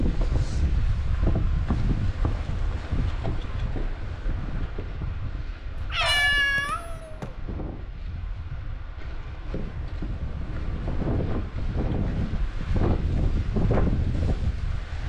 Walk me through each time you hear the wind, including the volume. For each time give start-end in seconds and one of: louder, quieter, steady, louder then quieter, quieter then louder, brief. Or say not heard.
0.0-15.0 quieter then louder.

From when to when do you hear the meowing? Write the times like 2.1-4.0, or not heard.
5.8-7.3.